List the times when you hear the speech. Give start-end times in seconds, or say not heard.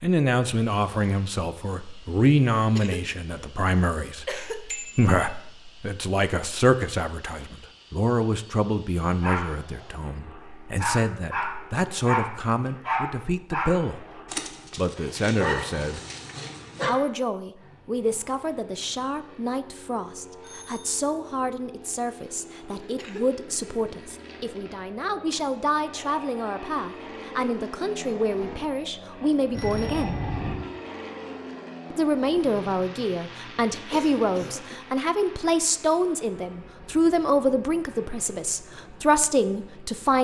0.0-14.0, 14.8-16.0, 16.9-30.2, 31.9-40.2.